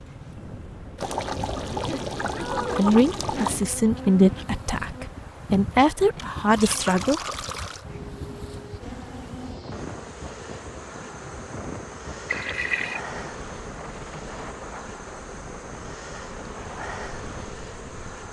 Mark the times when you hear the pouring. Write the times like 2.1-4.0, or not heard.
0.9-3.7, 6.5-7.8, 12.2-13.0.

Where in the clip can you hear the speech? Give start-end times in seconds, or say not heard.
2.8-7.2.